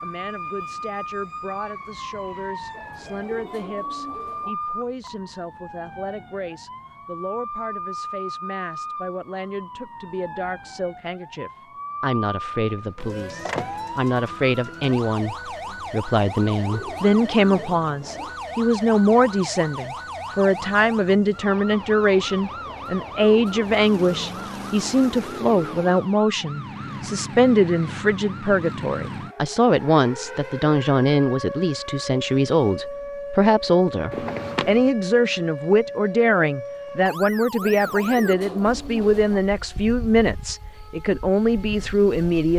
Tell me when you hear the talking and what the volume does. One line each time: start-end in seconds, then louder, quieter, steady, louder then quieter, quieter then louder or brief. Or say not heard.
0.0-42.5 louder.